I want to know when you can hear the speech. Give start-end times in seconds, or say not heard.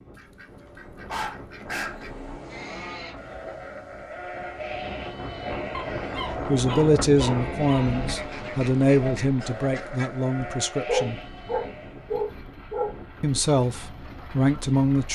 6.5-11.2, 13.2-15.1.